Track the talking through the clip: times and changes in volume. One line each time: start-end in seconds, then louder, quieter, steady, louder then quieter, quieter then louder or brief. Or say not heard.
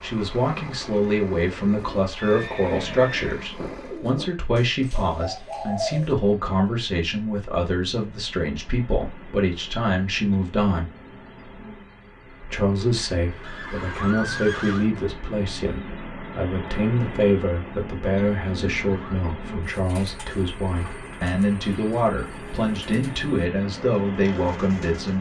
0.0-10.8 steady
12.4-25.1 steady.